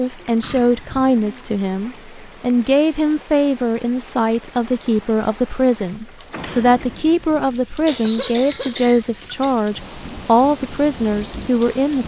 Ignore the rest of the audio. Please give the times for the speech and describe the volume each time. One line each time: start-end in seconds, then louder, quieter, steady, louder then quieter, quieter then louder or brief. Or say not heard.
0.0-12.0 steady.